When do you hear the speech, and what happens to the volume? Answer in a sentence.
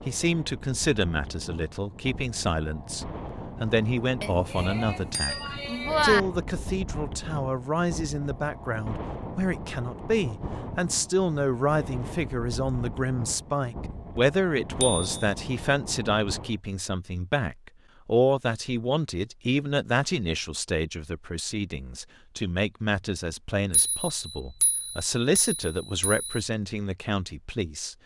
The speech can be heard from 0.1 to 27.9 s, at a steady volume.